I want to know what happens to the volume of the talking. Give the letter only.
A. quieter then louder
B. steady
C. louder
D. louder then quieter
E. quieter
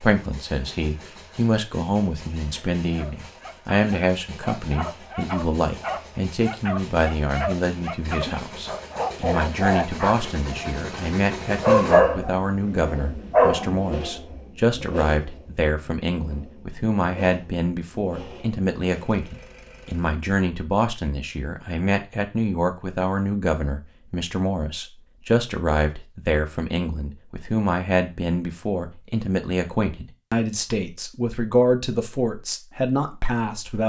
B.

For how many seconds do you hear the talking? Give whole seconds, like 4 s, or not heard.
34 s.